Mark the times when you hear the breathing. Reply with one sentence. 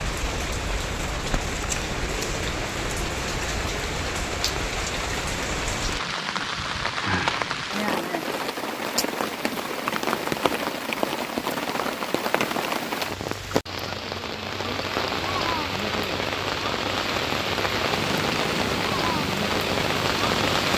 You can't hear the breathing here.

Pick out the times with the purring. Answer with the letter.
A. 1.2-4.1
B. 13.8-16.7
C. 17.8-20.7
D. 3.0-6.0
C.